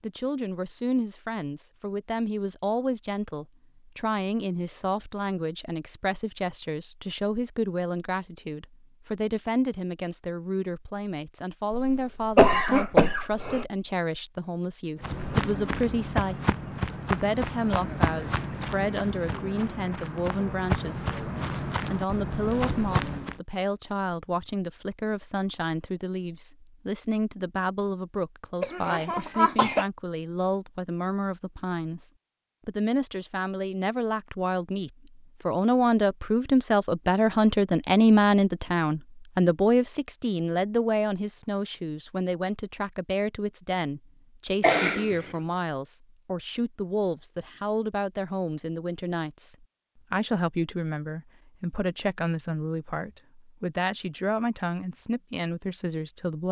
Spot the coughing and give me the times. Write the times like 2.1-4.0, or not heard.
11.7-13.7, 28.6-29.9, 44.6-45.1.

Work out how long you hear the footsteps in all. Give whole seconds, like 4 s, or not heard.
8 s.